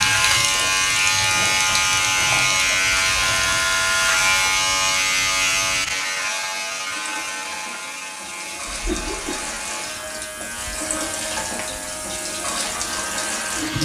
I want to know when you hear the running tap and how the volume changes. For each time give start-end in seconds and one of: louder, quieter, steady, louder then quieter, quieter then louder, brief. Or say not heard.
0.0-13.8 quieter then louder.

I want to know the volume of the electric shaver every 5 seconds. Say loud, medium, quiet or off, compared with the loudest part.
loud, medium, quiet.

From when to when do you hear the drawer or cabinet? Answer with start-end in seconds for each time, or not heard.
not heard.